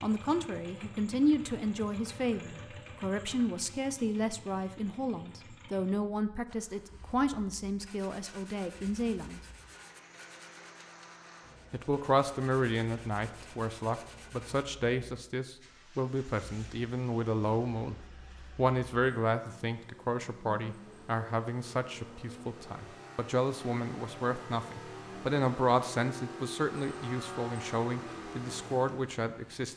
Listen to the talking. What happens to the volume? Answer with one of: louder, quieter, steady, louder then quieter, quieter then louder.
steady.